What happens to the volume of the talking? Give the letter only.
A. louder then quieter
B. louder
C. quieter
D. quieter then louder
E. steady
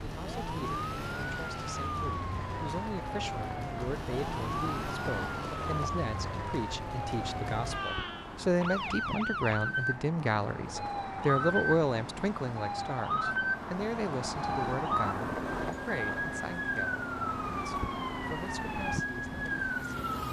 A.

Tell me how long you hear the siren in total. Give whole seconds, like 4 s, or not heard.
20 s.